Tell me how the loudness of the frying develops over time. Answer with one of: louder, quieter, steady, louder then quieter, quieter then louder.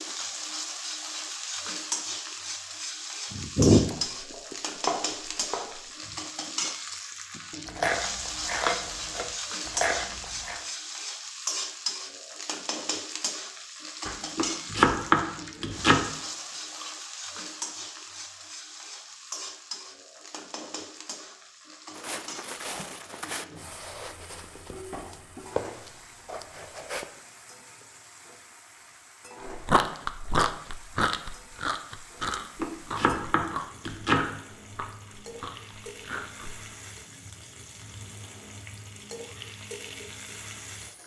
quieter.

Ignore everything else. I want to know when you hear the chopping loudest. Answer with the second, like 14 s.
15 s.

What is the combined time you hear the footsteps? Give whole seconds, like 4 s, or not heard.
5 s.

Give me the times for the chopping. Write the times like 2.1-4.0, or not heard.
3.9-5.8, 14.1-16.1, 32.2-34.2.